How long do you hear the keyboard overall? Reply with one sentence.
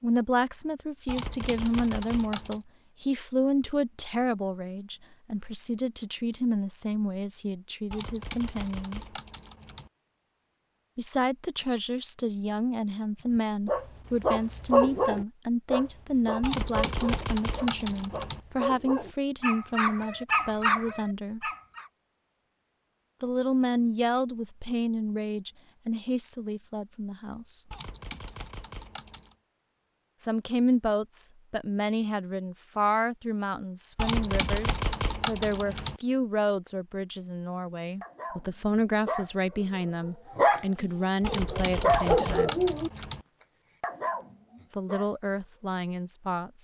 The keyboard can be heard for 11 seconds in total.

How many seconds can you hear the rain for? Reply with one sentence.
The rain can't be heard in this clip.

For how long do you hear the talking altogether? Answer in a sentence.
You can hear the talking for 38 seconds altogether.